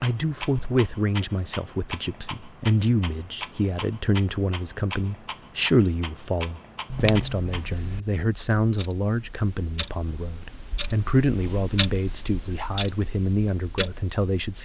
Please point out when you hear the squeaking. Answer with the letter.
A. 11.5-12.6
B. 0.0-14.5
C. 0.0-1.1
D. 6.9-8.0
D.